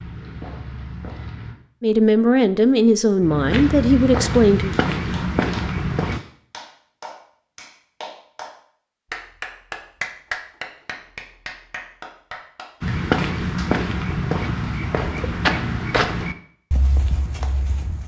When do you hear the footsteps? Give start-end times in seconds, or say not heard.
0.0-1.6, 3.2-6.2, 12.8-18.0.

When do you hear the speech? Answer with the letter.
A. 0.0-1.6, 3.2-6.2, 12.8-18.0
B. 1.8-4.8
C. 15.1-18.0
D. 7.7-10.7
B.